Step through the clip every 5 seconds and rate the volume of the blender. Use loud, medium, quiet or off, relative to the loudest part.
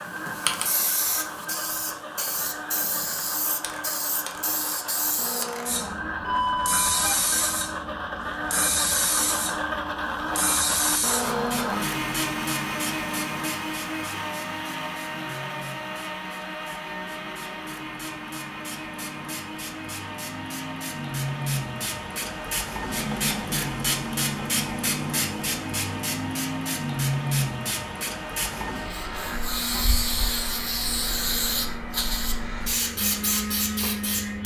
medium, loud, loud, medium, medium, medium, medium.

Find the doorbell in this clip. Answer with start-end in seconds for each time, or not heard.
6.2-7.2.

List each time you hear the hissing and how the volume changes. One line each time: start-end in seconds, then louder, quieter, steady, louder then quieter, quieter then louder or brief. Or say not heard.
0.0-34.4 quieter then louder.